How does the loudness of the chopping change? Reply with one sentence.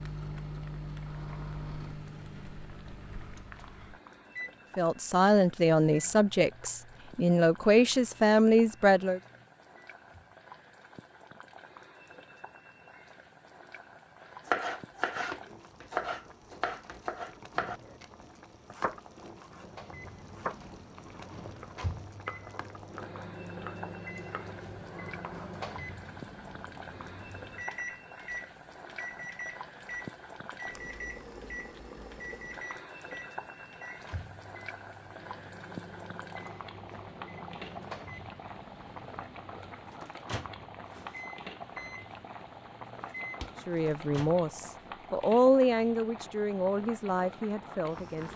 The loudness of the chopping goes down.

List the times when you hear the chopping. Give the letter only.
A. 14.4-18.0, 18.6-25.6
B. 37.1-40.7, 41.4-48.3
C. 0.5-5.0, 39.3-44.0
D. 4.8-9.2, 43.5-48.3
A.